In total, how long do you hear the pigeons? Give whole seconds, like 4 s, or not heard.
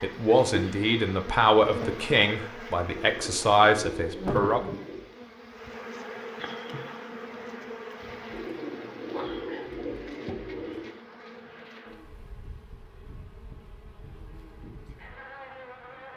5 s.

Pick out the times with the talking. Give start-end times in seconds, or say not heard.
0.0-4.6.